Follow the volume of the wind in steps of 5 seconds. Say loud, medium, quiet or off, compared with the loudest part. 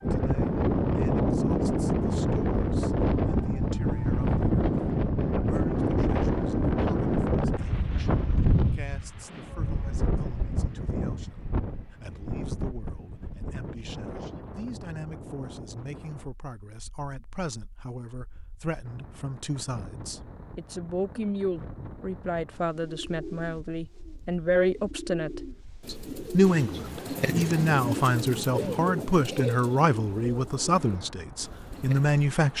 loud, loud, medium, quiet, quiet, quiet, quiet.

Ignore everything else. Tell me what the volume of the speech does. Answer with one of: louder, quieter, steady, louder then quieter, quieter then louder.
louder.